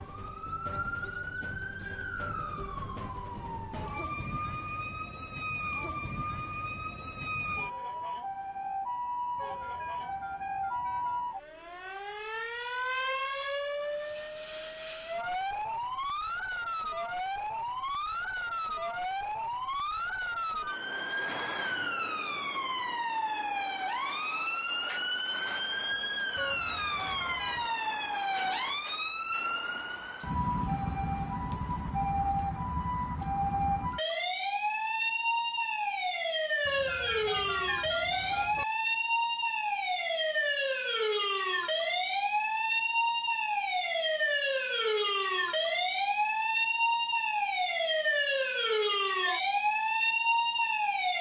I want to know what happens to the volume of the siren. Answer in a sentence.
The volume of the siren goes up.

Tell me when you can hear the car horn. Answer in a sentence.
The car horn can be heard from 9.3 to 11.2 s, from 26.4 to 27.8 s and from 36.6 to 38.6 s.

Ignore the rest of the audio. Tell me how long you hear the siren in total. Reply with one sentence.
You can hear the siren for 51 seconds altogether.